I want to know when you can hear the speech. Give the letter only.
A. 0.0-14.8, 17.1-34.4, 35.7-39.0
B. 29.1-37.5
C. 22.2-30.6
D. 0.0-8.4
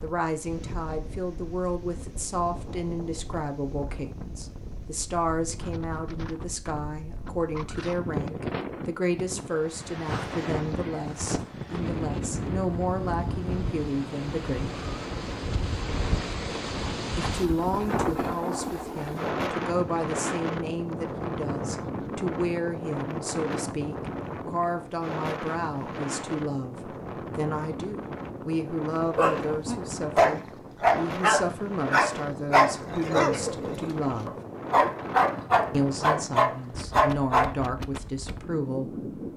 A.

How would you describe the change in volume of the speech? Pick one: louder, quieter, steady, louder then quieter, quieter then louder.
steady.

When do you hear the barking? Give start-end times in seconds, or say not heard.
29.1-37.5.